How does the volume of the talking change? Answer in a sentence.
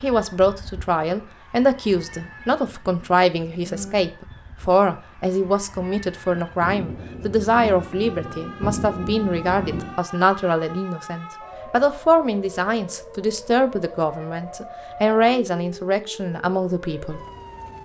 The loudness of the talking stays about the same.